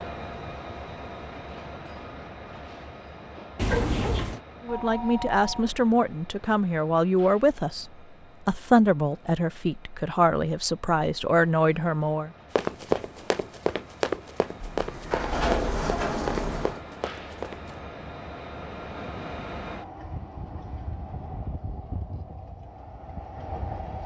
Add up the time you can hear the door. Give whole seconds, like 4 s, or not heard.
3 s.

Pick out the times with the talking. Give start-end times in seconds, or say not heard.
4.7-12.3.